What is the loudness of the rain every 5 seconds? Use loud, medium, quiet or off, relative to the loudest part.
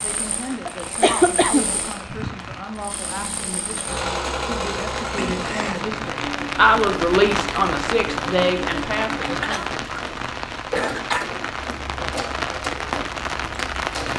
medium, loud, loud.